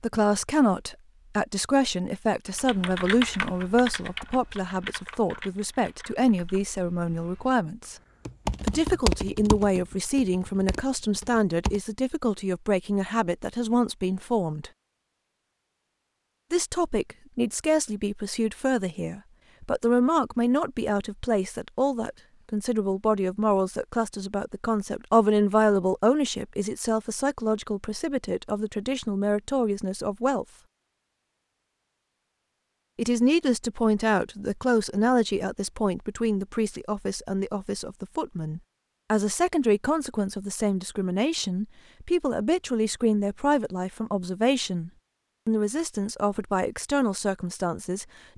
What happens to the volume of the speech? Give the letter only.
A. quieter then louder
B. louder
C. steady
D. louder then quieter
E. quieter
C.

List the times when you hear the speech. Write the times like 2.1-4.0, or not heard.
0.0-8.0, 8.6-14.7, 16.5-30.4, 33.0-48.0.